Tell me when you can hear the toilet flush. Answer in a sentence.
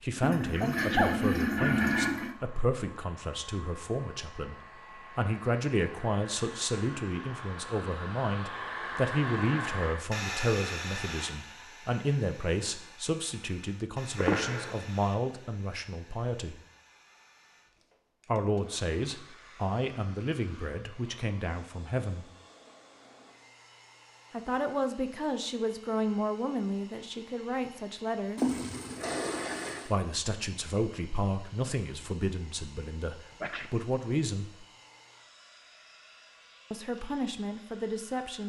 The toilet flush can be heard from 0.2 to 2.4 s and from 28.4 to 29.9 s.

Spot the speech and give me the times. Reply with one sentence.
The speech can be heard from 0.0 to 4.5 s, from 5.2 to 16.6 s, from 18.2 to 22.2 s, from 24.3 to 28.4 s, from 29.9 to 34.6 s and from 36.7 to 38.4 s.